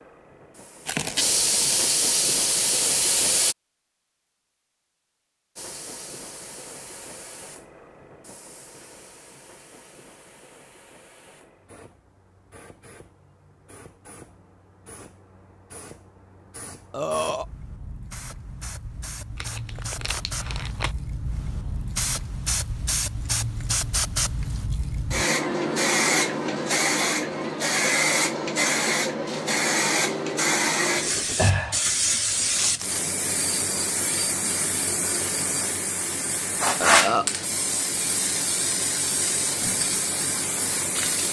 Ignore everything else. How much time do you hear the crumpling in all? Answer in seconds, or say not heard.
3 s.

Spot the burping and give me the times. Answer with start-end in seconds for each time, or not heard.
16.9-17.4, 36.8-37.3.